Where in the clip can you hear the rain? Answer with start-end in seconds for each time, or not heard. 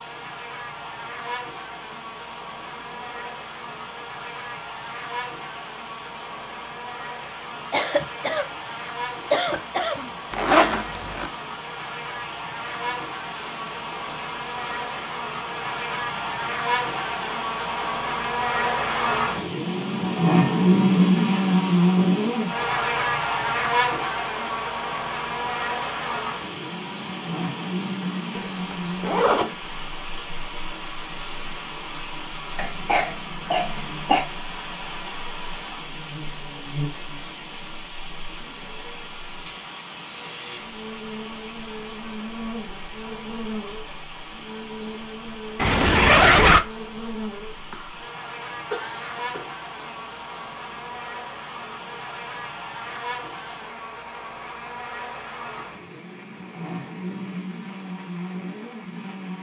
0.0-59.3.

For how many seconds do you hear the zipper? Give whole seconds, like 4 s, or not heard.
3 s.